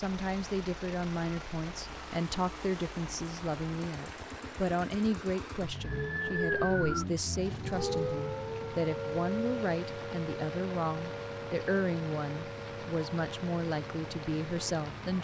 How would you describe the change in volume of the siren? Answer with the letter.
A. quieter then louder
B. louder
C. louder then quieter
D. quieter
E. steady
D.